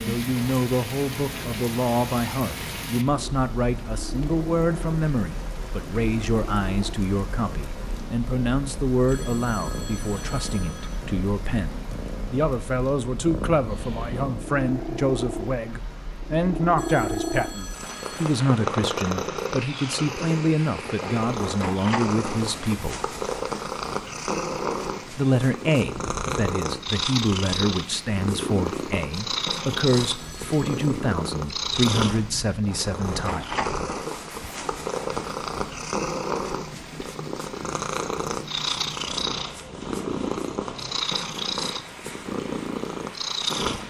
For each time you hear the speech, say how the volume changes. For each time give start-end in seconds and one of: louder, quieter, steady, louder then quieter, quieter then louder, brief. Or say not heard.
0.0-23.0 steady
25.1-33.5 steady.